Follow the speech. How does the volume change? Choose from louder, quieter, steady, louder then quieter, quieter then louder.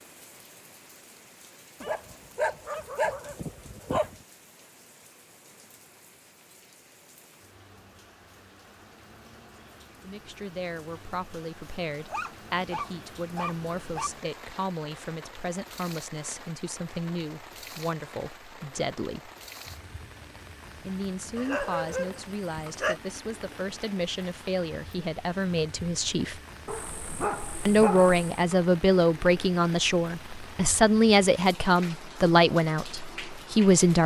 louder.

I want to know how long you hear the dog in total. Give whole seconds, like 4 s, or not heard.
8 s.